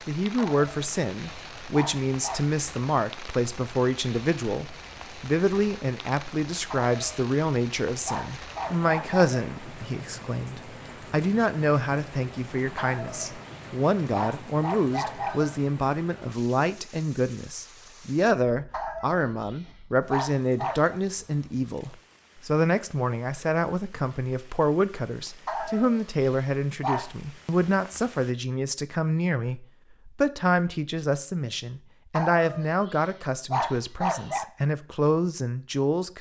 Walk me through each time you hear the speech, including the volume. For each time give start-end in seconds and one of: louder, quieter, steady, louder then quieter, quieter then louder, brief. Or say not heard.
0.1-36.1 steady.